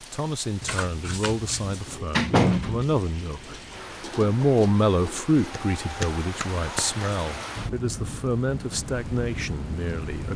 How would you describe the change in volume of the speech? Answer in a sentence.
The loudness of the speech goes up, then down.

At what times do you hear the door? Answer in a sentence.
The door can be heard from 1.6 to 3.0 s.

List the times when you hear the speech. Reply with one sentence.
You can hear the speech from 0.0 to 10.3 s.